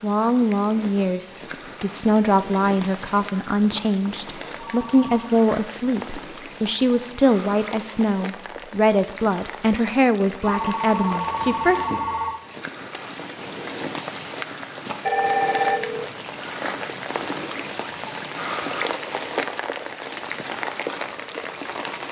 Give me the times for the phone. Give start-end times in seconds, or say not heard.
4.5-5.3, 10.4-12.4, 15.1-16.1.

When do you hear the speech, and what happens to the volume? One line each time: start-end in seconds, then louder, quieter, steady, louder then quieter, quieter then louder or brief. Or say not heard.
0.0-11.8 steady.